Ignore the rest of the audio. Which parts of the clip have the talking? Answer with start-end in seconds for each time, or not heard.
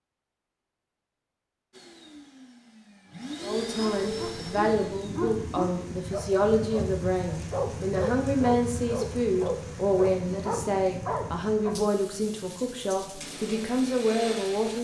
3.4-14.8.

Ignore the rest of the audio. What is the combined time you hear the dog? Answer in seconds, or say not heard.
8 s.